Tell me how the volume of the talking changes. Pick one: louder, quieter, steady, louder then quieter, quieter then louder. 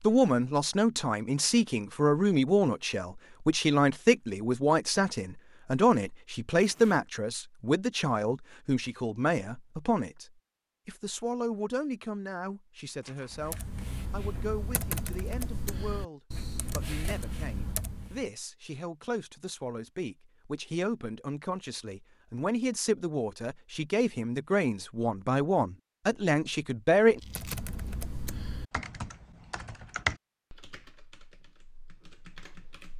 quieter then louder.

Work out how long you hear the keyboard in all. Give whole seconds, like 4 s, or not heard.
11 s.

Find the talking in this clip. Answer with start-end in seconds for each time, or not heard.
0.0-27.2.